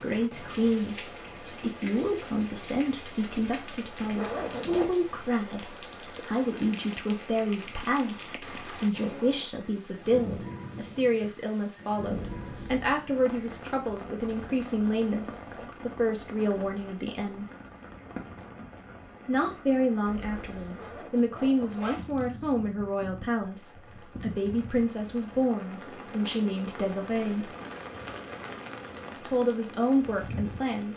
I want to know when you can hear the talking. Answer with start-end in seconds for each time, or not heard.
0.0-17.4, 19.2-27.5, 29.2-30.9.